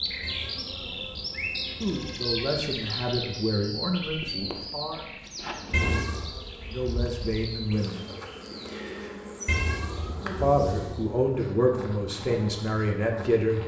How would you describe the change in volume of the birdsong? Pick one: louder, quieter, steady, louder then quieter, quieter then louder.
quieter.